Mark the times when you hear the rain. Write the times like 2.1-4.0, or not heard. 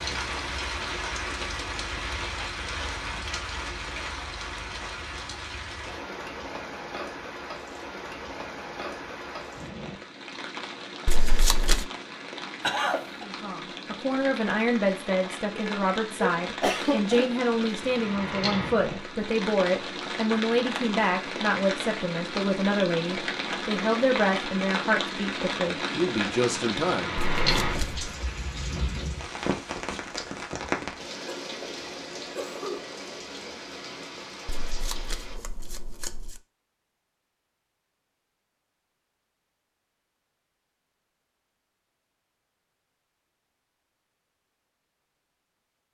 0.0-35.4.